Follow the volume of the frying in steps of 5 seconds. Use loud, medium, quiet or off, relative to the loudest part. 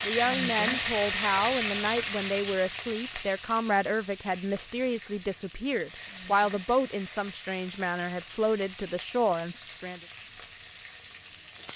loud, quiet, quiet.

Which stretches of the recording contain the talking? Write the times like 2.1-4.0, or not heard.
0.1-10.0.